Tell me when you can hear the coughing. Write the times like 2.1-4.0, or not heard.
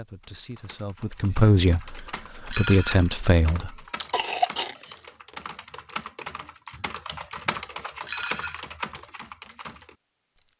4.0-4.8.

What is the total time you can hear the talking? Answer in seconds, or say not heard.
4 s.